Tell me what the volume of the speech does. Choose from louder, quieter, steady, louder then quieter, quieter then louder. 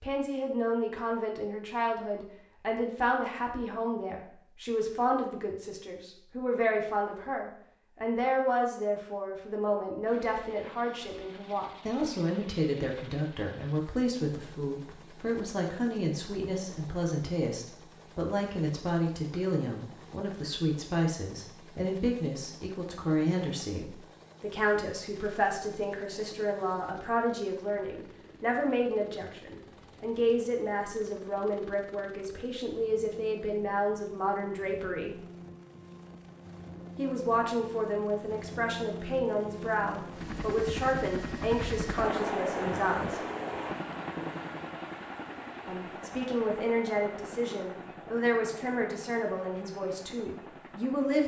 steady.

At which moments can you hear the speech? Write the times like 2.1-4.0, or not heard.
0.0-35.1, 37.0-43.2, 45.6-51.2.